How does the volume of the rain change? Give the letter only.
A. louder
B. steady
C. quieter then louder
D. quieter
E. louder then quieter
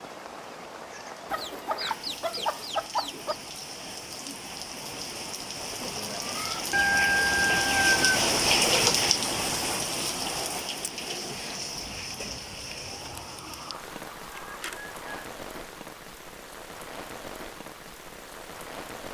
E.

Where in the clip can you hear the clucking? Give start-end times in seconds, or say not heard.
1.3-3.4, 6.7-9.1, 12.9-15.2.